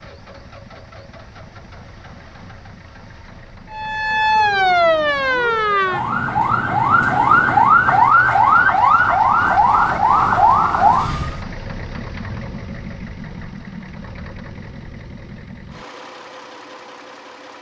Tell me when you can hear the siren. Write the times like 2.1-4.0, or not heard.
3.7-11.4.